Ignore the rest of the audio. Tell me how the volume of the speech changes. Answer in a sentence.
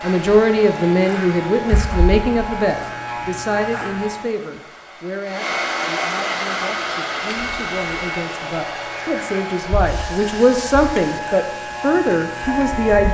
The loudness of the speech goes down, then up.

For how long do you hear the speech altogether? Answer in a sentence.
You can hear the speech for 13 seconds altogether.